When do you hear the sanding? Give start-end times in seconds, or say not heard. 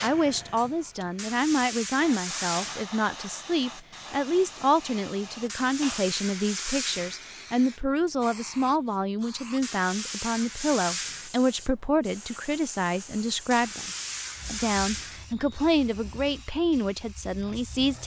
1.1-2.9, 5.5-7.2, 9.6-11.3, 13.5-15.2.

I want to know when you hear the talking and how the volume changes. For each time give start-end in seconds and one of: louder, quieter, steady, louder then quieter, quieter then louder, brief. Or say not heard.
0.0-18.0 steady.